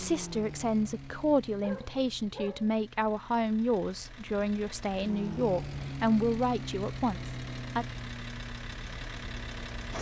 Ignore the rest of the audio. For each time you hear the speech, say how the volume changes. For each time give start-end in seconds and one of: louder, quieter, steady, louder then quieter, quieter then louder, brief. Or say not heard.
0.0-7.8 steady.